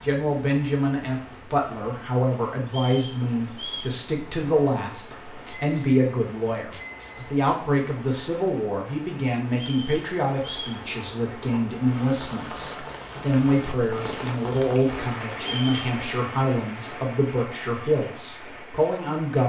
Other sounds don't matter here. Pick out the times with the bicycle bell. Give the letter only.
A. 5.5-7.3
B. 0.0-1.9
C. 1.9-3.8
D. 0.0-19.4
A.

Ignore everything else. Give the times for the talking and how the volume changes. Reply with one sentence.
You can hear the talking from 0.0 to 19.4 s, at a steady volume.